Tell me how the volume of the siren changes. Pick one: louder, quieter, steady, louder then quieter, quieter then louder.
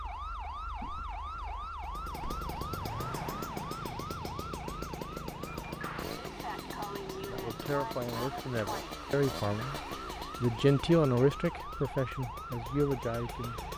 steady.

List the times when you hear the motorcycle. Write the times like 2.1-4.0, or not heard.
1.8-13.7.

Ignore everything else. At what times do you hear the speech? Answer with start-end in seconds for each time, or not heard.
7.2-9.8, 10.4-13.6.